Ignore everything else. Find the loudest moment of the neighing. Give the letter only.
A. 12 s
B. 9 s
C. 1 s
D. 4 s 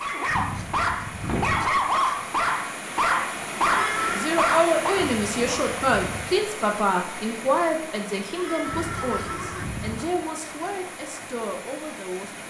D.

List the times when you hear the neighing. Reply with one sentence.
The neighing can be heard from 3.6 to 4.3 s and from 8.3 to 9.7 s.